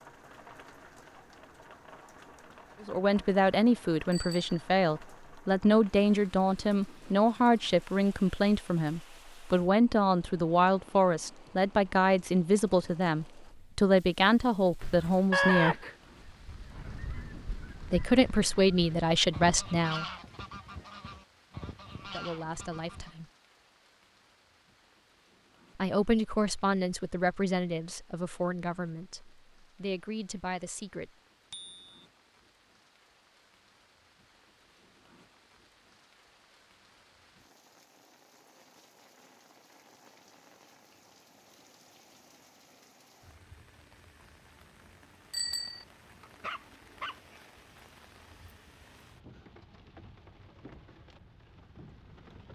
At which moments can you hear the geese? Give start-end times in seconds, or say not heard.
14.8-23.1.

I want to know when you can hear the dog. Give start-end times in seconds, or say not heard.
46.4-47.4.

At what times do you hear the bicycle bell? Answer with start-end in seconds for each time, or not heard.
4.1-4.5, 31.5-32.0, 45.3-45.9.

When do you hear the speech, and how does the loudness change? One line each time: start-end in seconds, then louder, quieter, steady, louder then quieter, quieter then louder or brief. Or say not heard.
2.8-15.8 steady
17.9-20.1 brief
22.1-23.3 brief
25.8-31.1 quieter then louder.